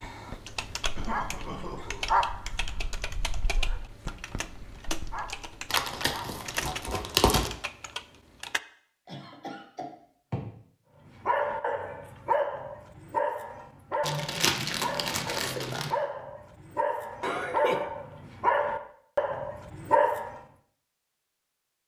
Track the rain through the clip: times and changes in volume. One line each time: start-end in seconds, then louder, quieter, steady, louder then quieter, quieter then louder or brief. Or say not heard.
not heard.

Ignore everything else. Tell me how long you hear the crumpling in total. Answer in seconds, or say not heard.
4 s.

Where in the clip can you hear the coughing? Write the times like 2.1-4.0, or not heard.
0.9-2.0, 9.1-10.5, 17.2-17.9.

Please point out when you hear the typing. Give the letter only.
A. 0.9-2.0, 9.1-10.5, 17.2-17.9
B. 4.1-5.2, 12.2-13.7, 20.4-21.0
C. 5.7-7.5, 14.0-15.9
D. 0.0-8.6
D.